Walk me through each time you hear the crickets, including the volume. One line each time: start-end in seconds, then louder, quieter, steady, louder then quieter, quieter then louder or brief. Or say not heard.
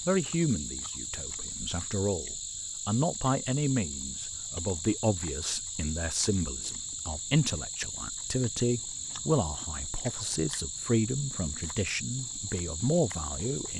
0.0-13.7 steady.